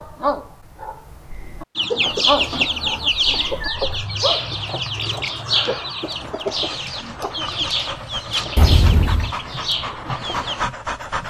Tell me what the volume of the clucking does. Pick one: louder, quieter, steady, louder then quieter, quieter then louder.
quieter.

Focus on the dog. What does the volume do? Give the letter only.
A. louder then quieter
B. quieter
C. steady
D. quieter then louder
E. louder
D.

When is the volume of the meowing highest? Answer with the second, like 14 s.
9 s.